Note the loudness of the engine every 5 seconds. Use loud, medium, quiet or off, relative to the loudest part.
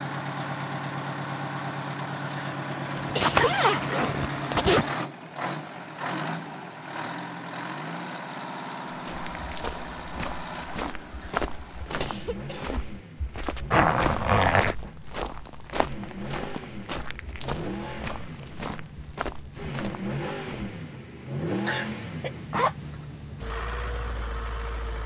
loud, loud, medium, medium, loud.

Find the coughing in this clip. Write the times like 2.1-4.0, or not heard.
2.4-3.5, 11.2-12.8, 21.6-22.3.